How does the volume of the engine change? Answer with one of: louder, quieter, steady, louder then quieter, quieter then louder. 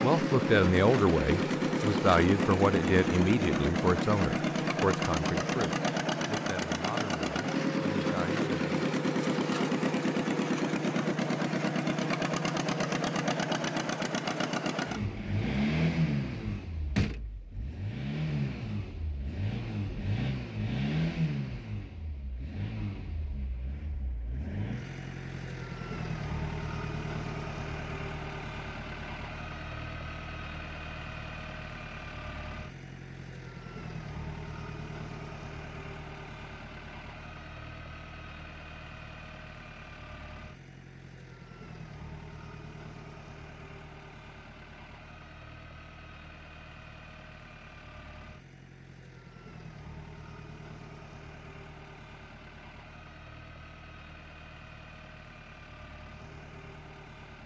quieter.